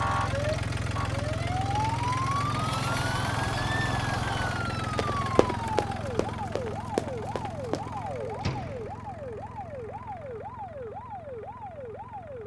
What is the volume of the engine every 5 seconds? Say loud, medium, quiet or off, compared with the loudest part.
loud, medium, quiet.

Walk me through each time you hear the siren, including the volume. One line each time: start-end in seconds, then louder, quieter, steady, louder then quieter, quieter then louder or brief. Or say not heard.
0.0-12.4 quieter.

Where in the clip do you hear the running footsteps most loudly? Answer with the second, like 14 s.
7 s.